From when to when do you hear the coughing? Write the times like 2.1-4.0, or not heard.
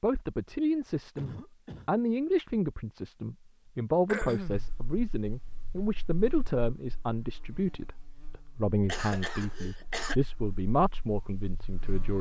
1.1-1.9, 4.0-4.7, 8.8-10.2.